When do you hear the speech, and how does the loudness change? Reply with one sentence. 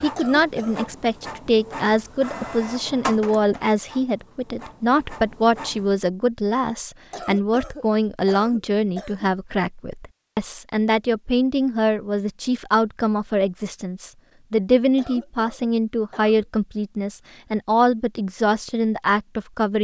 The speech can be heard from 0.0 to 19.7 s, at a steady volume.